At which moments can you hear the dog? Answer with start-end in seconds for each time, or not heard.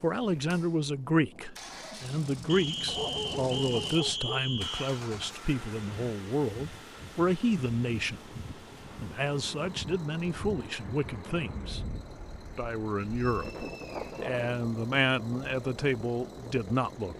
2.9-4.5.